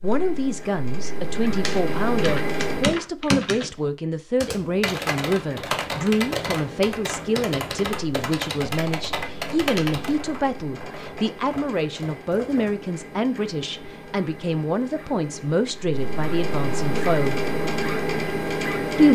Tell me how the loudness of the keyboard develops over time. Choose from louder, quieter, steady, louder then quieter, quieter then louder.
quieter.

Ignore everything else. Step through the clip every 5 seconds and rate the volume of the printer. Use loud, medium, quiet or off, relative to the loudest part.
loud, quiet, quiet, loud.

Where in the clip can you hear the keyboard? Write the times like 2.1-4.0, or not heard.
1.6-12.8.